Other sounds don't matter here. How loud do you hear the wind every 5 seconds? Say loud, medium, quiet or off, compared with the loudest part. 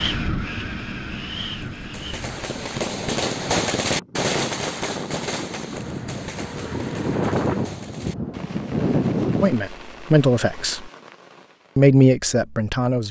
medium, loud, off.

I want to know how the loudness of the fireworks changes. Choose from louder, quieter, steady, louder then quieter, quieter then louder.
quieter.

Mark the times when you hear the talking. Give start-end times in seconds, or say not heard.
9.4-10.9, 11.8-13.0.